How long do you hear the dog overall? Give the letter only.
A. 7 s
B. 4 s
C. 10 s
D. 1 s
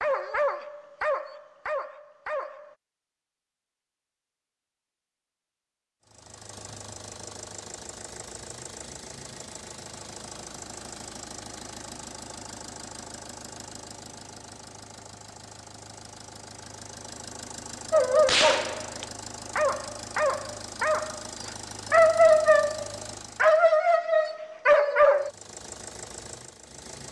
C.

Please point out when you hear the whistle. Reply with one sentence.
The whistle can't be heard in this clip.